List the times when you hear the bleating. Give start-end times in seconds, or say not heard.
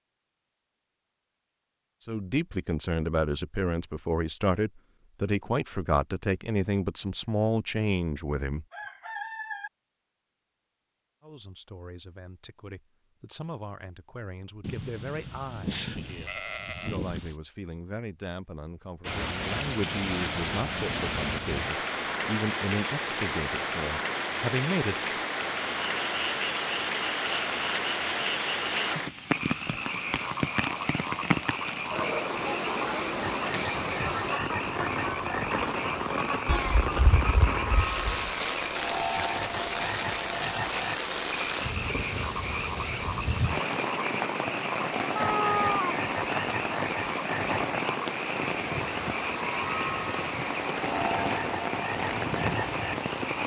14.6-17.4, 36.5-38.3.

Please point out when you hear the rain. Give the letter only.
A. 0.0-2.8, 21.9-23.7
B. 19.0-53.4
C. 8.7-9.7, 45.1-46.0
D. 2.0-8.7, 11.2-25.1
B.